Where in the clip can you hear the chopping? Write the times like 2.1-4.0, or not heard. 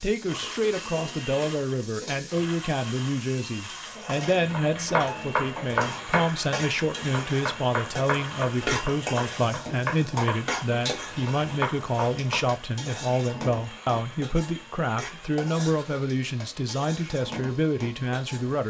4.3-12.5.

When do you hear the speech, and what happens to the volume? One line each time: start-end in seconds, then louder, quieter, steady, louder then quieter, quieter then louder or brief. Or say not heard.
0.0-18.6 steady.